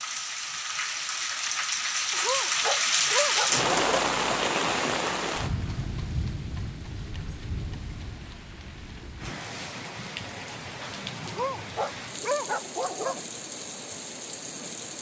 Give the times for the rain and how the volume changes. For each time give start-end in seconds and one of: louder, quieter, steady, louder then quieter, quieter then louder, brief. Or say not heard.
0.0-14.9 quieter.